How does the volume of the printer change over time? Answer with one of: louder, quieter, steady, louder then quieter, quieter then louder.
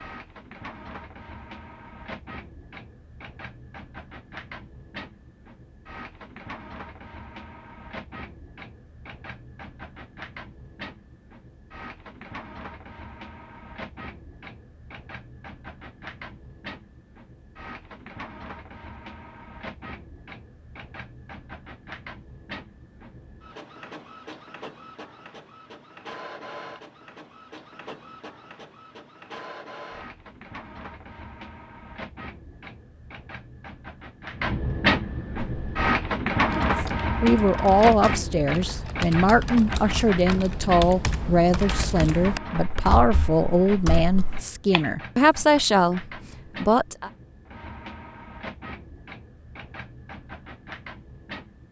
louder then quieter.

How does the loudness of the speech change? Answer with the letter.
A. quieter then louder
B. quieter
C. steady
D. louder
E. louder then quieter
C.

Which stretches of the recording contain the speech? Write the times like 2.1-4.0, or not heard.
36.5-47.1.